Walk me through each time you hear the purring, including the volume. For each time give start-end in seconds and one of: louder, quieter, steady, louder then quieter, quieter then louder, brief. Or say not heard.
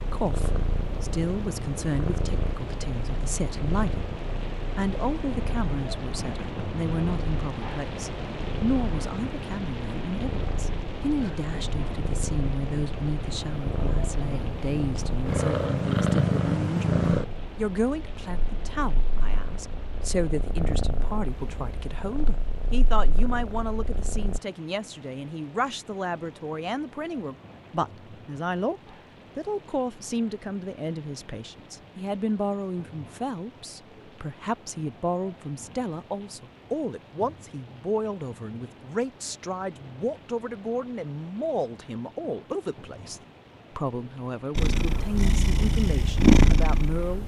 0.0-24.4 louder then quieter
44.5-47.2 brief.